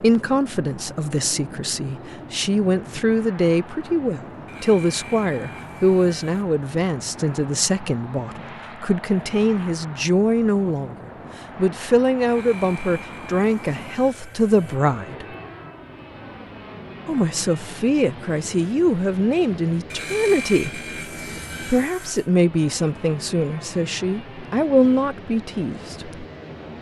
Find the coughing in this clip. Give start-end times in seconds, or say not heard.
not heard.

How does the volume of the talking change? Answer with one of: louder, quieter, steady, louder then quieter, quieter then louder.
steady.